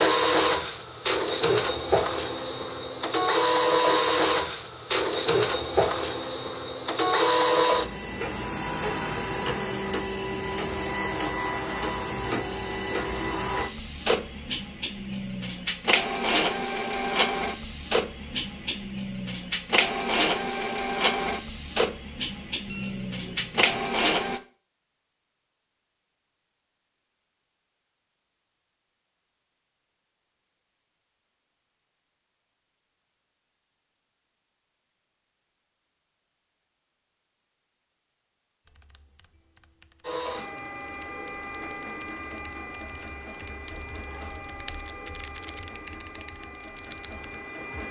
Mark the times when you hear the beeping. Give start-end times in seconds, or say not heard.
22.6-23.9.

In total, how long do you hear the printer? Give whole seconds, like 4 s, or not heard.
32 s.